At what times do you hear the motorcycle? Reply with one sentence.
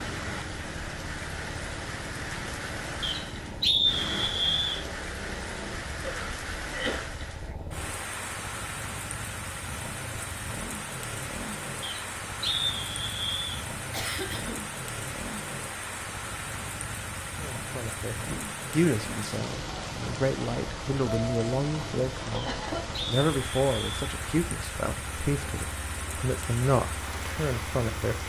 You can hear the motorcycle from 0.0 to 28.2 s.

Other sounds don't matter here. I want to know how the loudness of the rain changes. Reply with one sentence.
The loudness of the rain stays about the same.